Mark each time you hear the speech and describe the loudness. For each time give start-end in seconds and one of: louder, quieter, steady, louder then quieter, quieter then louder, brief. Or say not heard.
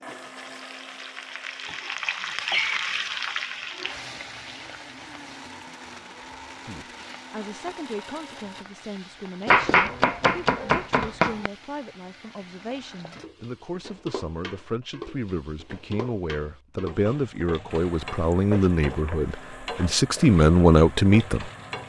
6.7-21.5 louder.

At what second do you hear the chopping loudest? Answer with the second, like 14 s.
10 s.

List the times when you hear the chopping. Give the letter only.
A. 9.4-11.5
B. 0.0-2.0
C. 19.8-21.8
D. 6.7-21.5
A.